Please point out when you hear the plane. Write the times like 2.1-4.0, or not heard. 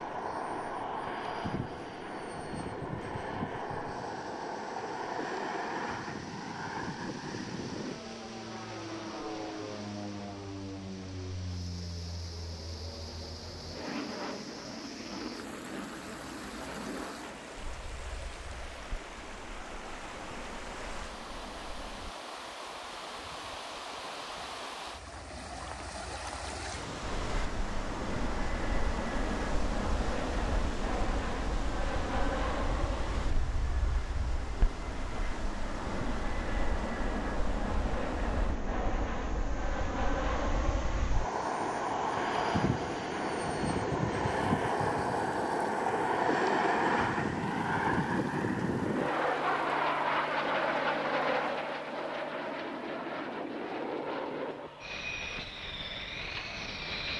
0.0-22.1, 27.0-57.1.